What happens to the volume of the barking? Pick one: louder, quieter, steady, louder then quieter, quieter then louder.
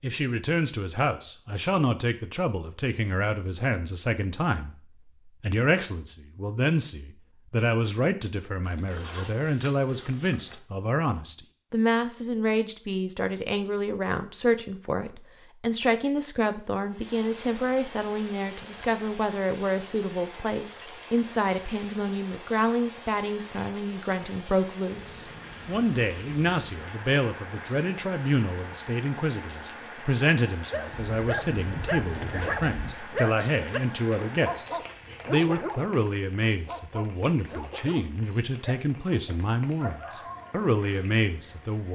quieter.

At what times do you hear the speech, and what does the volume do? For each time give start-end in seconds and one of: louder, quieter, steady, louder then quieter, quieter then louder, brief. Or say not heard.
0.0-41.9 steady.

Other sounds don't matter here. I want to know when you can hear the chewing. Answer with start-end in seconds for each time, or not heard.
not heard.